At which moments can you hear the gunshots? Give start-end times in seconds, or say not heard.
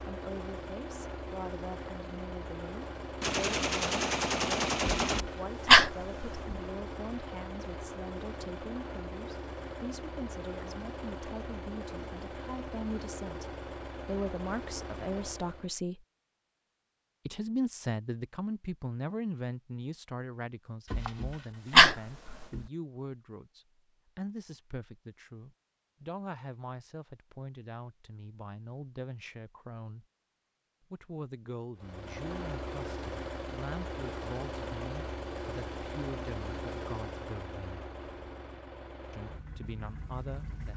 3.2-5.2.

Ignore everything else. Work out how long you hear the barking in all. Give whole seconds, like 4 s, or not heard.
3 s.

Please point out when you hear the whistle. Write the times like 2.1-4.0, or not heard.
not heard.